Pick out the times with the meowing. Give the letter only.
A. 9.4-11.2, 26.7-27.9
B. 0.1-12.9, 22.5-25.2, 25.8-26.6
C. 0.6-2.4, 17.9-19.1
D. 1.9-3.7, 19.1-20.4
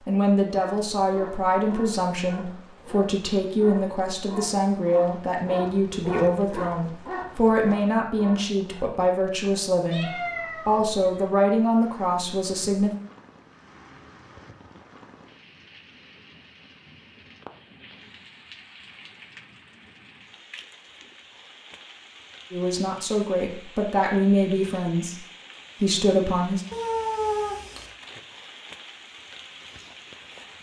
A.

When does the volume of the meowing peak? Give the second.
27 s.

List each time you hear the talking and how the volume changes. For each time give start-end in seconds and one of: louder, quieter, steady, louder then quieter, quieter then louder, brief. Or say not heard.
0.1-12.9 steady
22.5-25.2 brief
25.8-26.6 brief.